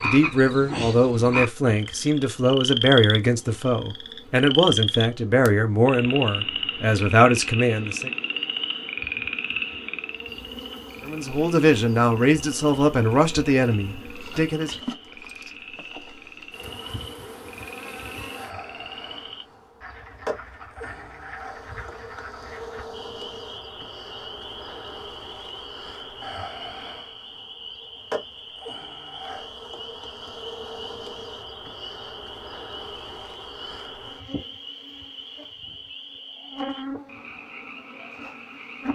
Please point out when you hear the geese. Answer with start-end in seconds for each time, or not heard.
not heard.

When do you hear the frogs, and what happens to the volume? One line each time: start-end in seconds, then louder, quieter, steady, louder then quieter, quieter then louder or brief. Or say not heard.
0.0-38.9 quieter.